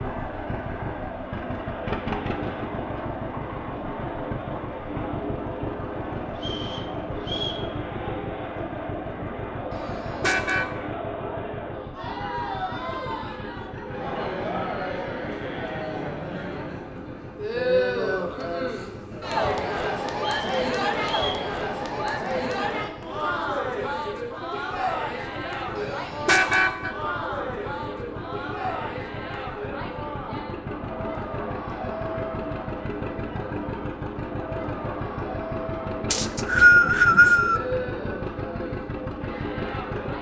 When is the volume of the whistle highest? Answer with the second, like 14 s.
37 s.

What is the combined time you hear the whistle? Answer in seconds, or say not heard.
4 s.